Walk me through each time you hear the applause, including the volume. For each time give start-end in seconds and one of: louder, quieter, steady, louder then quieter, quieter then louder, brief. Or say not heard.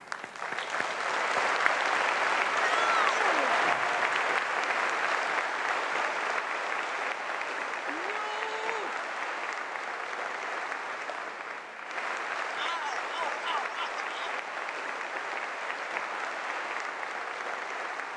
0.0-18.1 quieter.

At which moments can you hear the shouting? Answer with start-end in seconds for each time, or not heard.
2.6-3.6, 7.9-8.9, 12.6-14.3.